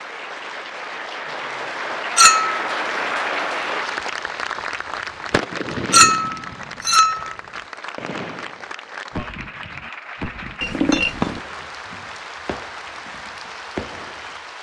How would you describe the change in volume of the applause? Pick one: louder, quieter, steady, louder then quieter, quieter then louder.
quieter.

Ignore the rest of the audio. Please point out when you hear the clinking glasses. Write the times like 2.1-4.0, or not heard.
2.1-2.6, 5.9-7.3, 10.6-11.4.